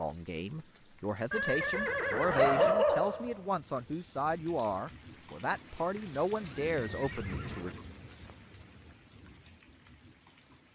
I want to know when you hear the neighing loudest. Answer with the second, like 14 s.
2 s.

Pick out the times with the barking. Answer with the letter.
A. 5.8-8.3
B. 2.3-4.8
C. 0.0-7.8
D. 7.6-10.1
B.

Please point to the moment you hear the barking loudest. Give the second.
3 s.